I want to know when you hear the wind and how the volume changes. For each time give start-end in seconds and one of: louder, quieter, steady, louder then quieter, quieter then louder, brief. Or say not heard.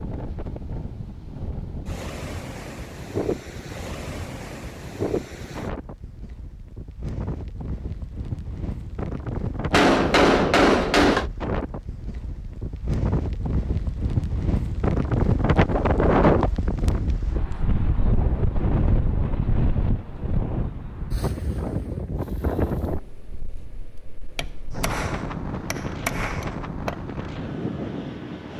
0.0-28.5 louder then quieter.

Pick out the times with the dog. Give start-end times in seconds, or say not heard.
not heard.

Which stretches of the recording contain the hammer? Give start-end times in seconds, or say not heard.
9.7-11.3, 24.4-27.0.